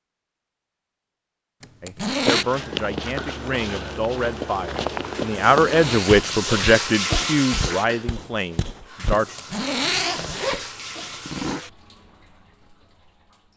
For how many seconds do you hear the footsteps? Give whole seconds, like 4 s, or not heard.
7 s.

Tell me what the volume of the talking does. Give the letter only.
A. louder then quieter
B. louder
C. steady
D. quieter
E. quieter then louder
A.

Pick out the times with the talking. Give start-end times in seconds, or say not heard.
1.8-9.2.